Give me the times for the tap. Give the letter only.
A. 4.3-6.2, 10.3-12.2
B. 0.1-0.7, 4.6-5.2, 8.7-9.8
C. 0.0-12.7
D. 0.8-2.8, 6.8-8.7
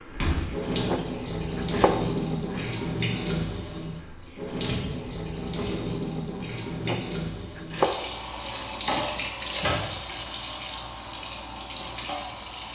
C.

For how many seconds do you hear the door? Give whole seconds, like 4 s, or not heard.
2 s.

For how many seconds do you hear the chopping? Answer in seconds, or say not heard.
4 s.